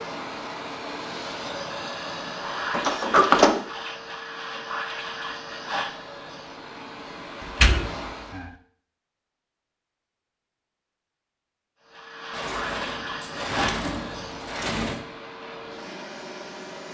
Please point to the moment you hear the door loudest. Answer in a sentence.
The loudest moment of the door is at 3 seconds.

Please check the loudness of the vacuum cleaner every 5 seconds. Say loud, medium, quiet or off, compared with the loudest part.
loud, loud, loud, medium.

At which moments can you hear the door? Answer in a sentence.
You can hear the door from 2.7 to 3.6 s, from 7.4 to 8.5 s and from 12.3 to 15.0 s.